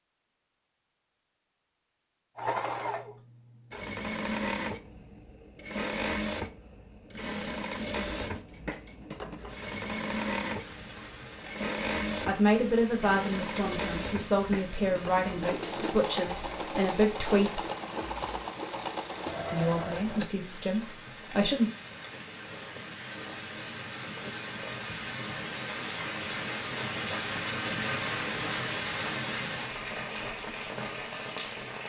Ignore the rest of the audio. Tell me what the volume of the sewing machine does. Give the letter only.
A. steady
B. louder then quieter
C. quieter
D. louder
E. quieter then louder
A.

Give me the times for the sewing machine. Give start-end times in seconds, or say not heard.
2.4-20.3.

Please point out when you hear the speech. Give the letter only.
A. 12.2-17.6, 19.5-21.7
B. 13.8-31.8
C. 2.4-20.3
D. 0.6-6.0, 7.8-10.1
A.